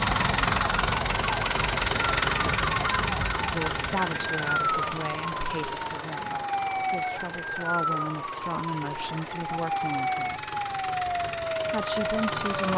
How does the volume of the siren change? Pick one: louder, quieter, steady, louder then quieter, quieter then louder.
steady.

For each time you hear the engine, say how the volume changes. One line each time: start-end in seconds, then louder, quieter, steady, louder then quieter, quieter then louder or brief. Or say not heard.
0.0-12.7 quieter then louder.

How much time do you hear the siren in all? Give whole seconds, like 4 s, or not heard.
13 s.